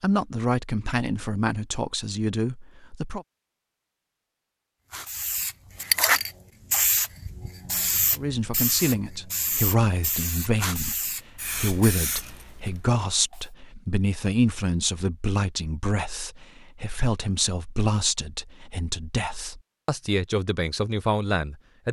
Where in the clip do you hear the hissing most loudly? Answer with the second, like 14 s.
6 s.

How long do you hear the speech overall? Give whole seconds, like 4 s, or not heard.
17 s.